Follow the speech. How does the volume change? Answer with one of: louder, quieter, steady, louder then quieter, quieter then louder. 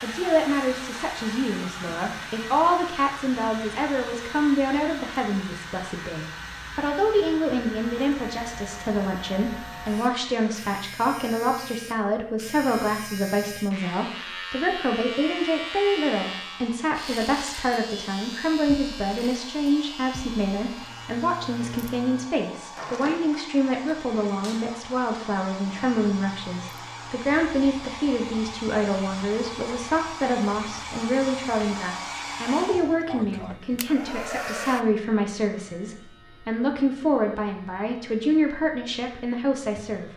steady.